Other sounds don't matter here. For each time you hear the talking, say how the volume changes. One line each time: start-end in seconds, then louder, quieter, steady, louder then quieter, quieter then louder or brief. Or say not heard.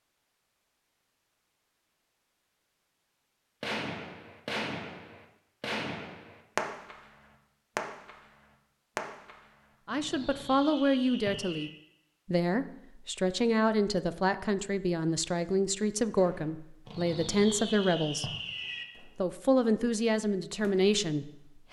9.8-18.3 steady
19.0-21.6 brief.